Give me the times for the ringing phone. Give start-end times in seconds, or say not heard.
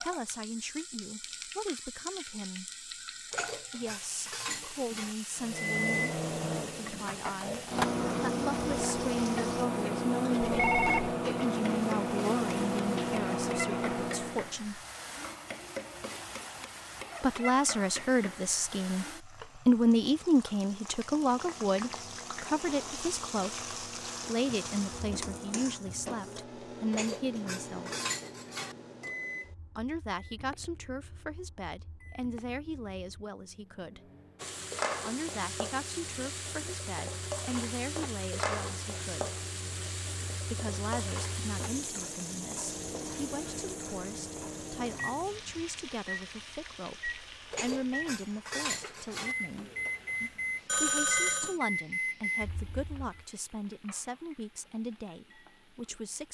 10.4-11.2, 50.6-51.5.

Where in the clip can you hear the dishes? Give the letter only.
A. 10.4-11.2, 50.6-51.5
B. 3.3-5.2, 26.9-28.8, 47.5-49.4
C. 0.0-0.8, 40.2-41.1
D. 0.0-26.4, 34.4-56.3
B.